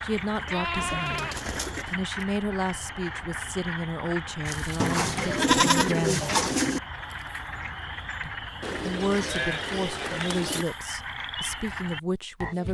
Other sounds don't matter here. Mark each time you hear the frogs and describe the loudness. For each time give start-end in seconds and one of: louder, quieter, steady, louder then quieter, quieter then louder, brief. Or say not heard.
0.0-12.6 steady.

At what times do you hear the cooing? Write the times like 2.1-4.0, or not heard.
0.8-1.9, 4.8-6.8, 8.6-10.7.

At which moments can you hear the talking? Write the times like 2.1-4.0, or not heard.
0.0-6.3, 8.2-12.6.